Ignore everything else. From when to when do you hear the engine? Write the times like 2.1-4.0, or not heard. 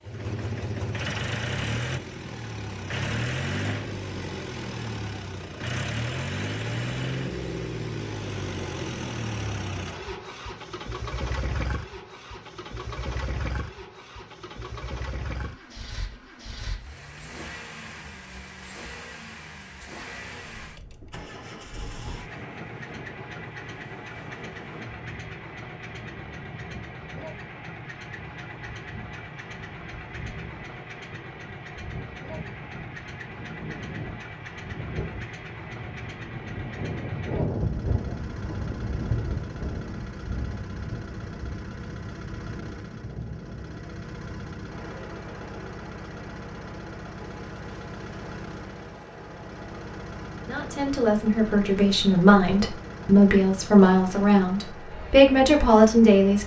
0.0-56.4.